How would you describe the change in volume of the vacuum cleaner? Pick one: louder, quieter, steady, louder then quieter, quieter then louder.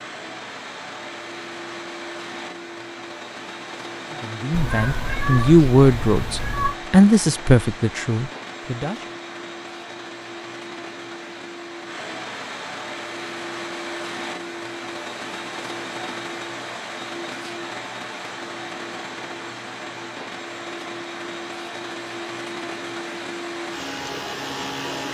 steady.